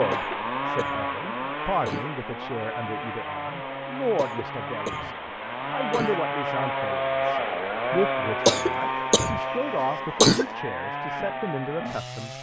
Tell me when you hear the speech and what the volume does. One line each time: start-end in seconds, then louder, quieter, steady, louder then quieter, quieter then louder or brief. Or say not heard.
0.0-12.3 steady.